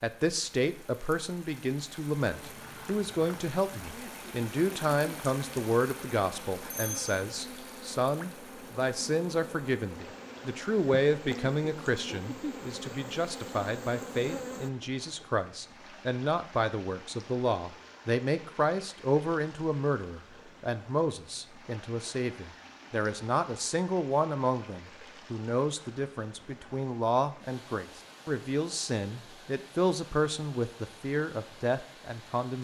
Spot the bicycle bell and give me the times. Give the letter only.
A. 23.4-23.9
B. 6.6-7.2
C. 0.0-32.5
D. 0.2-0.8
B.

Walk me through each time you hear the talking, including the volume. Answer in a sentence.
The talking can be heard from 0.0 to 32.5 s, at a steady volume.